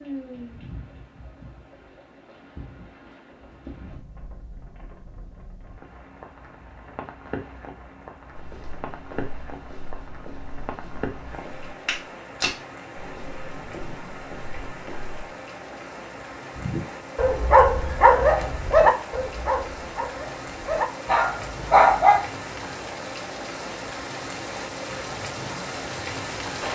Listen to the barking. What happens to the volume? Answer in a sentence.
The volume of the barking goes down, then up.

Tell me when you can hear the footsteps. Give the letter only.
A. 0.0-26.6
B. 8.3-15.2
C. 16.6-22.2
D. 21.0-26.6
B.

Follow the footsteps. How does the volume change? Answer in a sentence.
The loudness of the footsteps goes up, then down.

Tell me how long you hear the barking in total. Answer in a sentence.
The barking can be heard for 6 seconds in total.